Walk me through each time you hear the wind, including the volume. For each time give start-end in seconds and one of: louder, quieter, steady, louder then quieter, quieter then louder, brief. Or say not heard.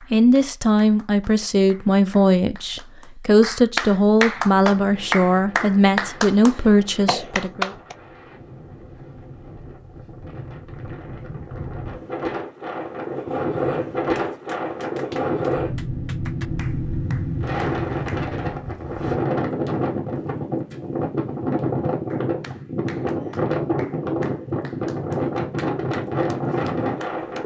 4.4-27.4 louder.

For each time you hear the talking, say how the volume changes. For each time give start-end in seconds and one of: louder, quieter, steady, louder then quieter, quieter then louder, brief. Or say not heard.
0.1-7.7 steady.